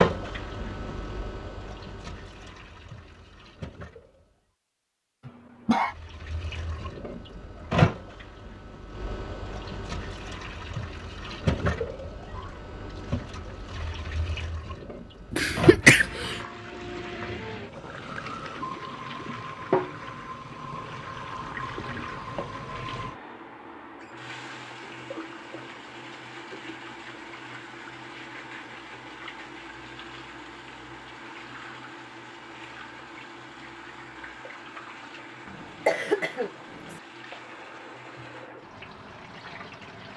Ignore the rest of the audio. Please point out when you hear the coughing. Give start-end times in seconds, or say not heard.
5.2-6.0, 15.3-16.4, 35.5-37.0.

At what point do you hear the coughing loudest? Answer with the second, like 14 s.
16 s.